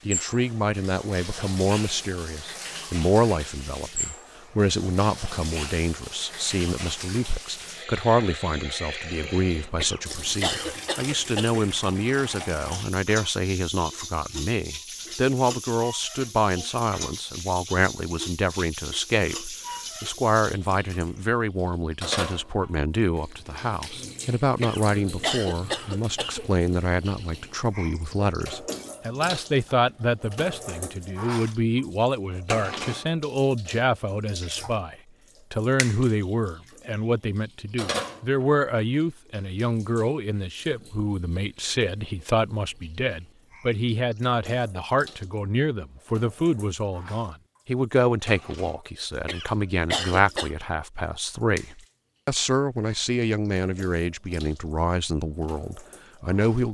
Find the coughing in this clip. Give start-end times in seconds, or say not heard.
9.8-11.6, 24.6-26.4, 49.2-50.5.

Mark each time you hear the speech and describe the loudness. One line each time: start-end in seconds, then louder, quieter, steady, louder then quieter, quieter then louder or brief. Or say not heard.
0.1-56.6 steady.